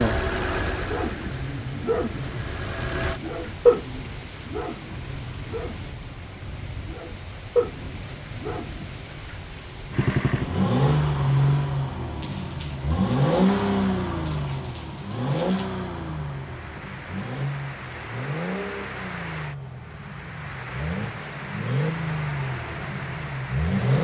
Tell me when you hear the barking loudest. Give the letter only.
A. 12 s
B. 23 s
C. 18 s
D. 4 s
D.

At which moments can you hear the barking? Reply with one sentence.
The barking can be heard from 0.8 to 9.2 s.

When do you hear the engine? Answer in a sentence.
You can hear the engine from 0.0 to 3.2 s and from 9.9 to 23.9 s.